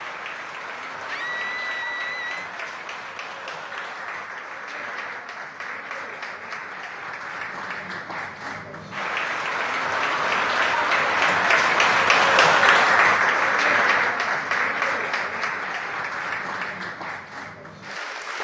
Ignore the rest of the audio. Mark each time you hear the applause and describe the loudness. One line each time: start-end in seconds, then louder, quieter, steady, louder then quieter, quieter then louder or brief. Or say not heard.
0.0-18.4 louder then quieter.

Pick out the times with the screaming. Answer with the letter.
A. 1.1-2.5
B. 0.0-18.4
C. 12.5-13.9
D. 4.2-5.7
A.